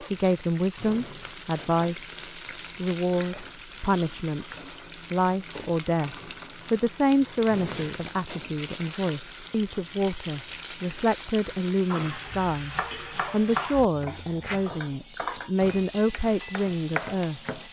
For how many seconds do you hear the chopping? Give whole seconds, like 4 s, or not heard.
6 s.